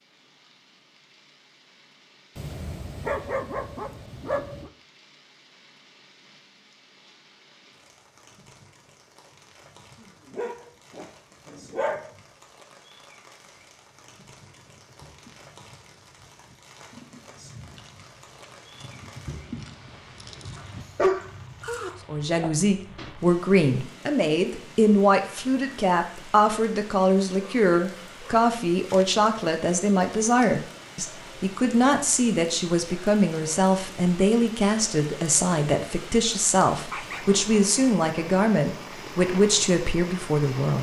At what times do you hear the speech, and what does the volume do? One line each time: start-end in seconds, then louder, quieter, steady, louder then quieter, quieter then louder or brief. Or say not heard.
22.1-40.7 steady.